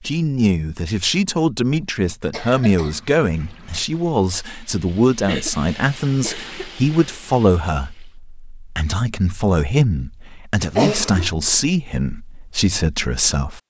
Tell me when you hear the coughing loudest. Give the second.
11 s.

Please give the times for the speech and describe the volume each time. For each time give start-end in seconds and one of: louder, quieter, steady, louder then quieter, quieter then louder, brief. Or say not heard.
0.0-13.6 steady.